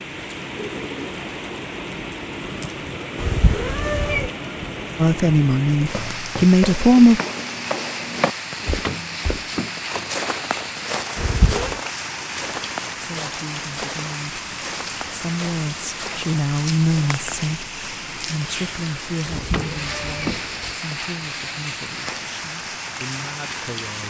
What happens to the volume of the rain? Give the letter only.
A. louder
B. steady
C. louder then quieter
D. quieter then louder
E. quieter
B.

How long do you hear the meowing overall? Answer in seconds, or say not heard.
3 s.